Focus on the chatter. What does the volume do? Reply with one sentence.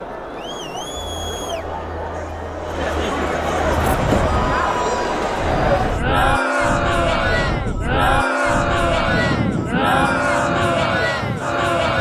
The volume of the chatter goes up.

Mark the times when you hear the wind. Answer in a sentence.
The wind can be heard from 3.5 to 11.9 s.